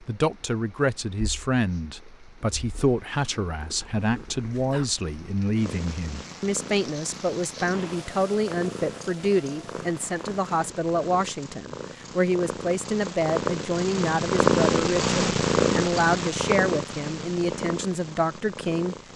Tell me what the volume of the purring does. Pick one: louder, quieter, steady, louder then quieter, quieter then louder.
louder.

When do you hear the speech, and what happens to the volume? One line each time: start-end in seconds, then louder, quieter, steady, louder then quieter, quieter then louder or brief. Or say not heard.
0.0-18.9 steady.